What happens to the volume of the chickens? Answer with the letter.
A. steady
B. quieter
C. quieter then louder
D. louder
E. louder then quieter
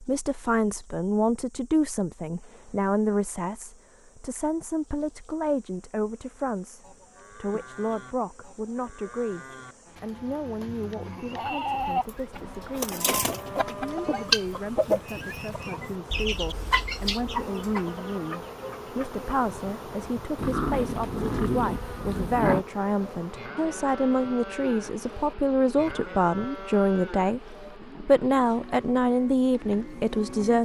B.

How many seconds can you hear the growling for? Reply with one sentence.
You can hear the growling for 2 seconds altogether.